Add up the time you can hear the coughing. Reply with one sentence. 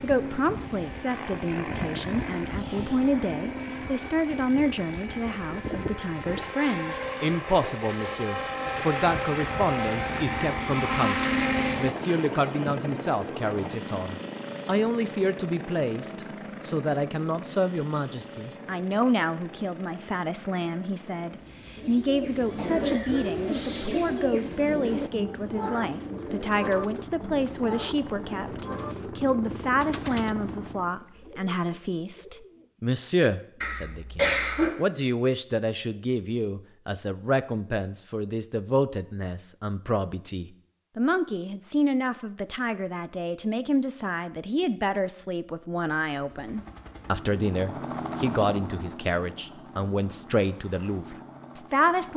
You can hear the coughing for 3 seconds altogether.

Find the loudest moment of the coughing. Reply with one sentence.
The loudest moment of the coughing is at 34 seconds.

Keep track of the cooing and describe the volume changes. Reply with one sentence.
The volume of the cooing goes down.